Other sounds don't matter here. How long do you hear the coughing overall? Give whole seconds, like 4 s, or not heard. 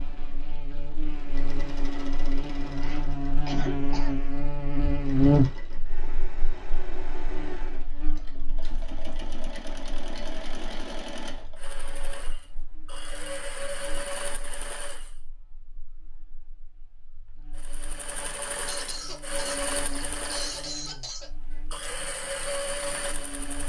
5 s.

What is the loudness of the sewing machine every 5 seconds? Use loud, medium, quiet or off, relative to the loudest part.
medium, medium, loud, loud, loud.